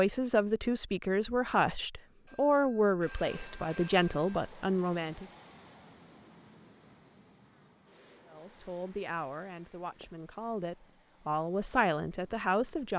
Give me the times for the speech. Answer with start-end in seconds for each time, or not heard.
0.0-5.2, 8.3-12.9.